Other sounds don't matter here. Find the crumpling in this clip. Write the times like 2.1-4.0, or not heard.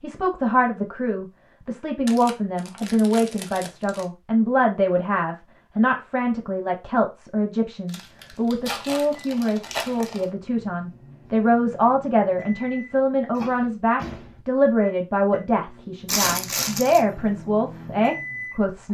2.0-4.0, 7.8-10.3, 16.1-17.0.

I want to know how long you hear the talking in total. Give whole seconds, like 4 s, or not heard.
19 s.